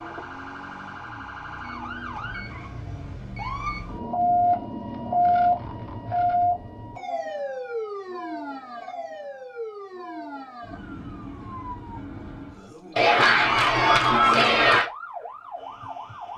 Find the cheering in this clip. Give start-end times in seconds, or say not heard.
12.9-14.9.